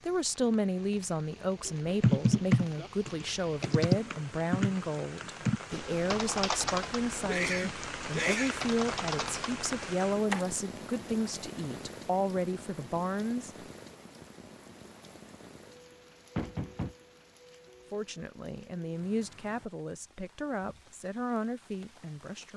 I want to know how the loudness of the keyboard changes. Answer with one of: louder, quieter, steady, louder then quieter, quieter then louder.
quieter then louder.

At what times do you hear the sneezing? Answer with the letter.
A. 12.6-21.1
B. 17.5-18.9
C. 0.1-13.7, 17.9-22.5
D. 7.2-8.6
D.